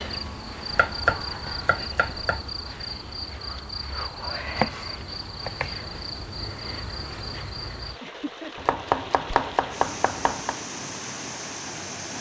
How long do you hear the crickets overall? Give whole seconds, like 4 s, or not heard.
8 s.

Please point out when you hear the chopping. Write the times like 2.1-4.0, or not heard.
0.8-2.5, 4.4-6.0, 8.6-10.6.